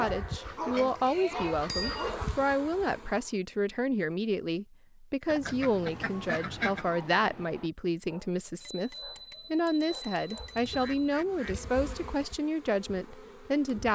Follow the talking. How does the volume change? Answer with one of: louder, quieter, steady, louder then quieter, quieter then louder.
steady.